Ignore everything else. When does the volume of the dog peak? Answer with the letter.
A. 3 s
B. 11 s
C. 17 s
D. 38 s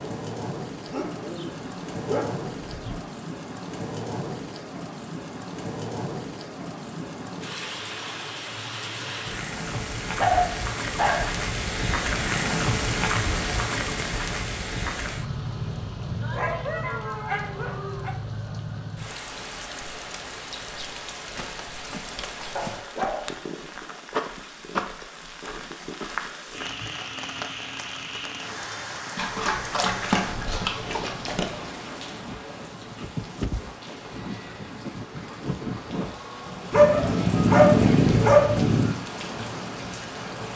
D.